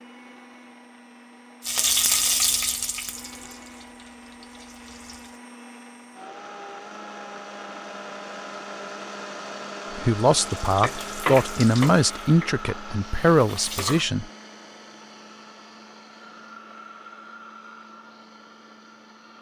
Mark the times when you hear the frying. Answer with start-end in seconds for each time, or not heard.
1.6-5.3, 10.4-14.1.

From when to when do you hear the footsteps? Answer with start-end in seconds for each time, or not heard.
not heard.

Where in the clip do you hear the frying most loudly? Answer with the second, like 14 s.
2 s.